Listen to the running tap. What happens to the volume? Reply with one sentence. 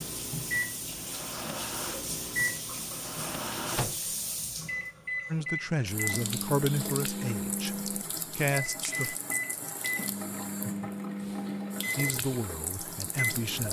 The volume of the running tap stays about the same.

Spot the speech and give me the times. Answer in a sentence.
The speech can be heard from 5.3 to 9.2 s and from 11.9 to 13.6 s.